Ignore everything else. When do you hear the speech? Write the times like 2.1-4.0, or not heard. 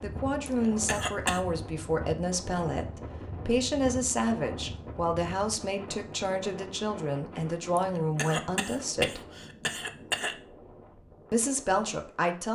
0.0-9.2, 11.3-12.5.